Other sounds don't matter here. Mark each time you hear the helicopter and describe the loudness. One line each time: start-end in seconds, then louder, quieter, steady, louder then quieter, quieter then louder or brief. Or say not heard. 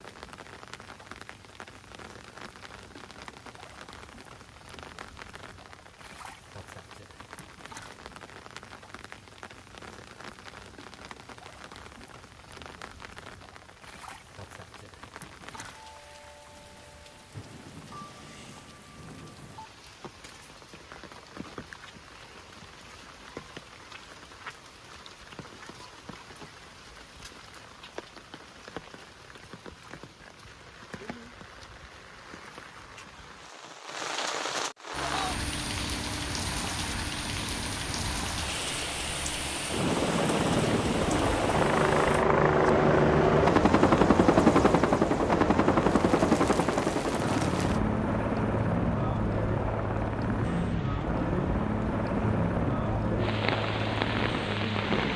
34.9-55.1 louder then quieter.